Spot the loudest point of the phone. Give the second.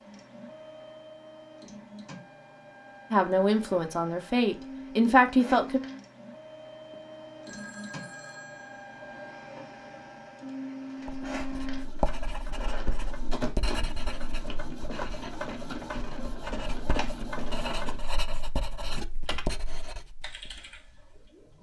8 s.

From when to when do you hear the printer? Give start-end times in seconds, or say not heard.
0.0-18.1.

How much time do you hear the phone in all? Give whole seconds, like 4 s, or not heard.
2 s.